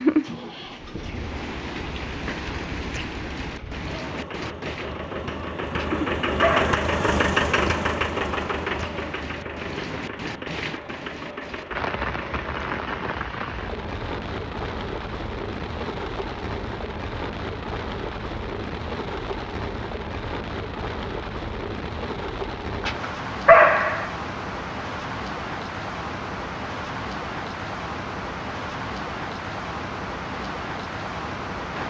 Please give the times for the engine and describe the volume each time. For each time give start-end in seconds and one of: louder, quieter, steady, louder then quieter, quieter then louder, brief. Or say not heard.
0.2-13.1 louder then quieter.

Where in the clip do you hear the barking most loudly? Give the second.
24 s.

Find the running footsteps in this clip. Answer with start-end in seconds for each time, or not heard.
not heard.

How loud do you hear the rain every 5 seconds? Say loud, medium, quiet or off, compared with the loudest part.
loud, medium, loud, loud, loud, loud, loud.